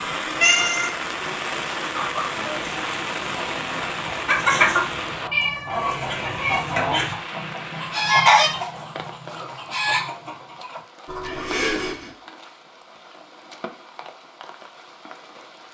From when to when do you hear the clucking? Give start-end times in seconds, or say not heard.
1.9-11.7.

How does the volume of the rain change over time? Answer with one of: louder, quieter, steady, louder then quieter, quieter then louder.
quieter.